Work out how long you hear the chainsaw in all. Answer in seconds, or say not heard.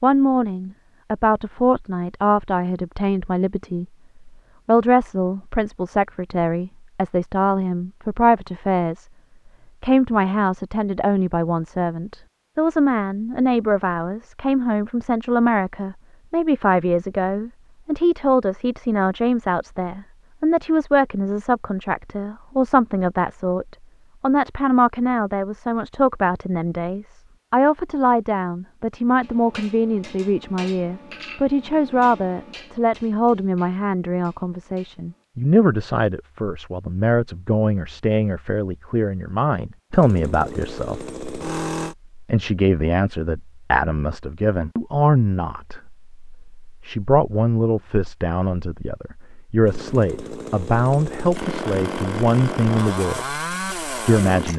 7 s.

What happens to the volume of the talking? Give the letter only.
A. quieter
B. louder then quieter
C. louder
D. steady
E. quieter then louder
D.